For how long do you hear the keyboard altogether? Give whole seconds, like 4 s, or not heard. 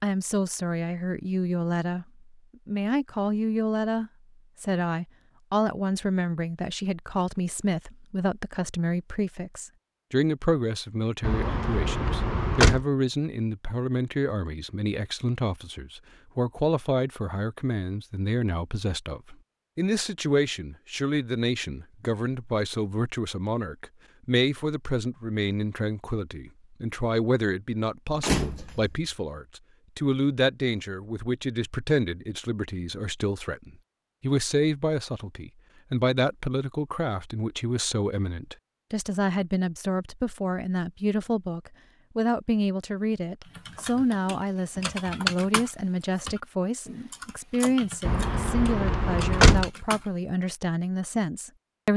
7 s.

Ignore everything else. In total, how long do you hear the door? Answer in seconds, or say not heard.
4 s.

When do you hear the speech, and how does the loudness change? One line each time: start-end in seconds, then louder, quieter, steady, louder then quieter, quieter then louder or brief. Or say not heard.
0.0-2.0 brief
2.6-51.9 steady.